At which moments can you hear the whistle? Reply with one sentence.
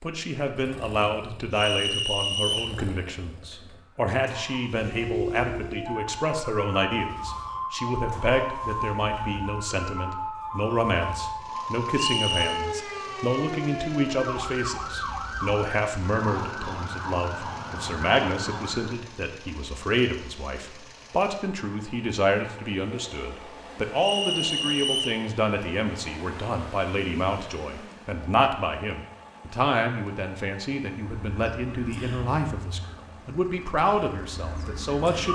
The whistle can be heard from 1.5 to 2.8 s, from 11.9 to 12.6 s and from 23.9 to 25.2 s.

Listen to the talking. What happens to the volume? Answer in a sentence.
The volume of the talking stays about the same.